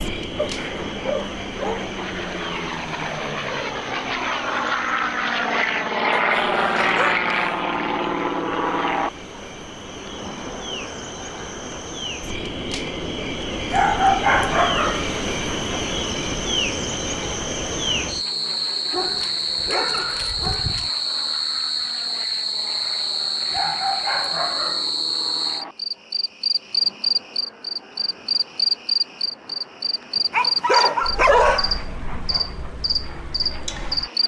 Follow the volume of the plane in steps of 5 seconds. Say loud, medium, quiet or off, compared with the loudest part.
medium, loud, quiet, quiet, quiet, quiet, quiet.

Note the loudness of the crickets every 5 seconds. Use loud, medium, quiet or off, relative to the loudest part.
medium, quiet, medium, loud, loud, loud, loud.